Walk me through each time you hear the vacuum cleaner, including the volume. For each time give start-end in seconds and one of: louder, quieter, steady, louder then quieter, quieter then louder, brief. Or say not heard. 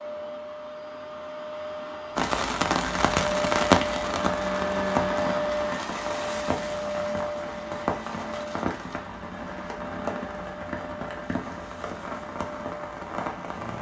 0.0-13.7 louder then quieter.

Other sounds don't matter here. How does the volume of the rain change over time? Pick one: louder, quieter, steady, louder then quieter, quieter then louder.
quieter.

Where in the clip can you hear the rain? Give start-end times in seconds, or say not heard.
2.1-13.7.